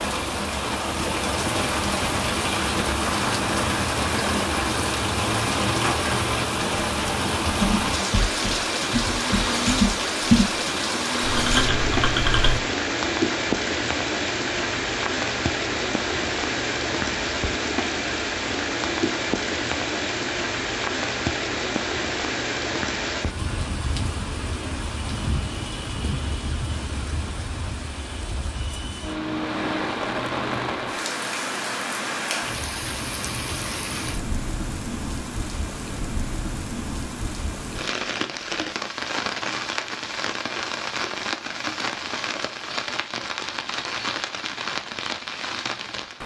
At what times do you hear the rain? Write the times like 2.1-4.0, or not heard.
0.0-46.2.